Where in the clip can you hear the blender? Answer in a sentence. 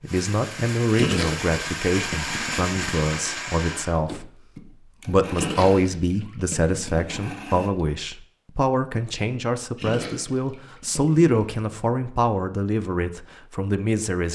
You can hear the blender from 0.1 to 7.8 s.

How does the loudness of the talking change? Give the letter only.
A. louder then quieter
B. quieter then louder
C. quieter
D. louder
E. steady
E.